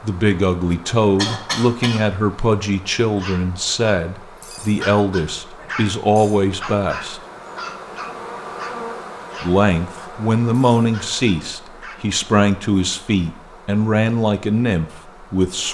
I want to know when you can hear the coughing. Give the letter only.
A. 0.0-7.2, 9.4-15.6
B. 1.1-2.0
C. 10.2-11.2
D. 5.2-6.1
B.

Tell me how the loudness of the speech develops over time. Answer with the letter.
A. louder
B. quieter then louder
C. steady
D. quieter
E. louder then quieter
C.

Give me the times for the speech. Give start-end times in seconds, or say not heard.
0.0-7.2, 9.4-15.6.